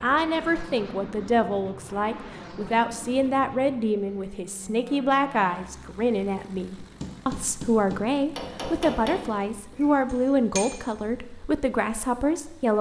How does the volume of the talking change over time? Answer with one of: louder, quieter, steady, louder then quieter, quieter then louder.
steady.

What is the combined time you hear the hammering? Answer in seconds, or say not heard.
4 s.